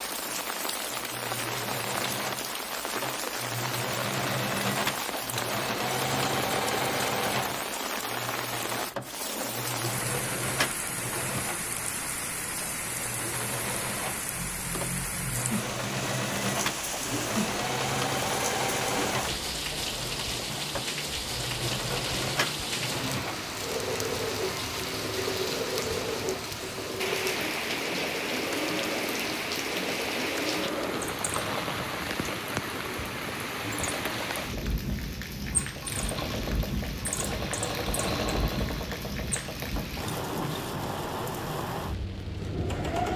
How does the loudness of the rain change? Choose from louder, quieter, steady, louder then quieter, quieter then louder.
steady.